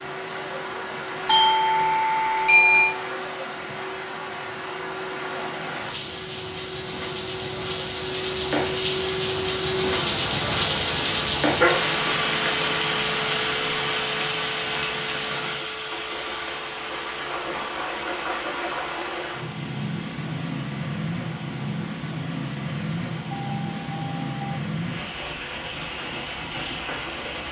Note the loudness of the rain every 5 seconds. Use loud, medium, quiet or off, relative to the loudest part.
medium, loud, loud, medium, medium, medium.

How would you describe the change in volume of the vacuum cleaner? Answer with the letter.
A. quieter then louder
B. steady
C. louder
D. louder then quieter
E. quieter
D.